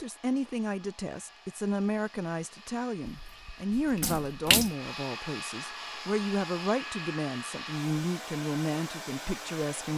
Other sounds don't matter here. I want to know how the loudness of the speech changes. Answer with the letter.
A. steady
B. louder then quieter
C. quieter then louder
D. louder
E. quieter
A.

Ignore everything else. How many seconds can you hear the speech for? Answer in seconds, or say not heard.
10 s.